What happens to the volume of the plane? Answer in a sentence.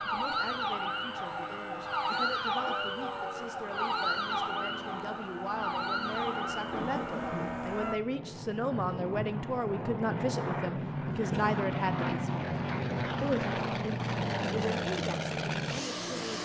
The volume of the plane goes up.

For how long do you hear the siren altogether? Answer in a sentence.
The siren can be heard for 8 seconds in total.